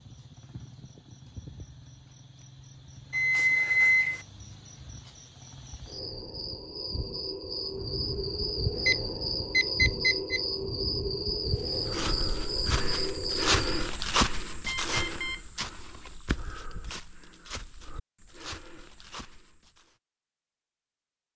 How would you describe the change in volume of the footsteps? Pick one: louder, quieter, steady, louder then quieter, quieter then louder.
louder then quieter.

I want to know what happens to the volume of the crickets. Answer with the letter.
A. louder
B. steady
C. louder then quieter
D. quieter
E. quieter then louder
A.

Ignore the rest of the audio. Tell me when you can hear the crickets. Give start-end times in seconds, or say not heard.
0.0-13.9.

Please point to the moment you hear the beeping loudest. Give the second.
4 s.